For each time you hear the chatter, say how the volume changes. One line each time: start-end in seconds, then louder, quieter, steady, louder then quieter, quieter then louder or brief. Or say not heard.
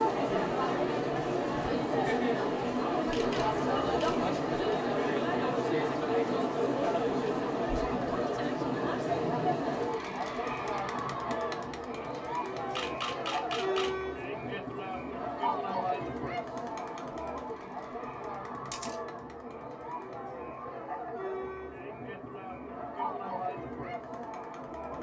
0.0-24.9 quieter.